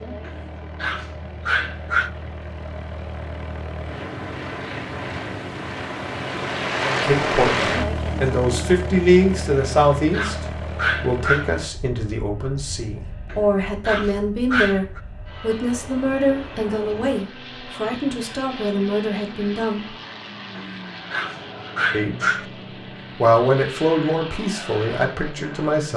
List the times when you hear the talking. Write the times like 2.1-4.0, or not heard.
6.8-19.9, 21.9-22.4, 23.1-25.9.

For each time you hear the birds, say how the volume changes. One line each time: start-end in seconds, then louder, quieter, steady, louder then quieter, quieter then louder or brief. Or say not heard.
not heard.